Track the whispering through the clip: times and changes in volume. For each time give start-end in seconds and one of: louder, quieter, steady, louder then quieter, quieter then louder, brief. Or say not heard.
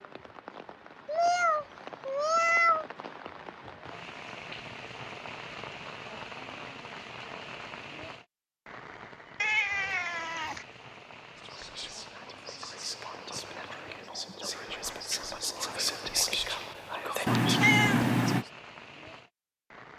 11.3-18.5 louder.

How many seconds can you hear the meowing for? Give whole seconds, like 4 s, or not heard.
4 s.